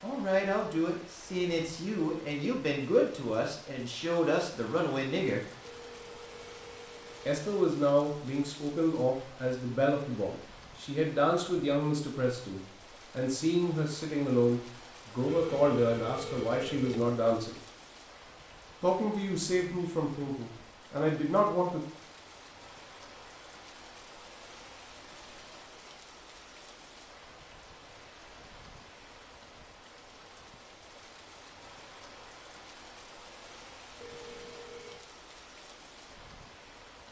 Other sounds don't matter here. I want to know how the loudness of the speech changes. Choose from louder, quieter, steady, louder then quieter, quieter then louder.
steady.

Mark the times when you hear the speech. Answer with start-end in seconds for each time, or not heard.
0.0-5.4, 7.2-17.6, 18.8-21.8.